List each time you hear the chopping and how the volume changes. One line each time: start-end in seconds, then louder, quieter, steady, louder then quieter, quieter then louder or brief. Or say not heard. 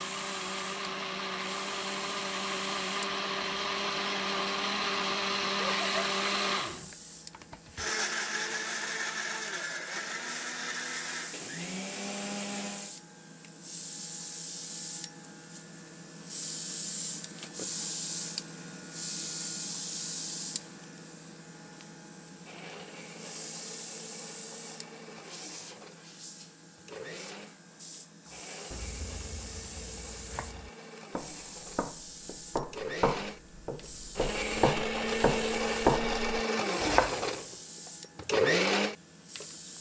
28.7-37.3 louder.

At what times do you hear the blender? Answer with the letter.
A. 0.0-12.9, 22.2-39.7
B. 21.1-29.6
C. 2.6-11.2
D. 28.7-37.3
A.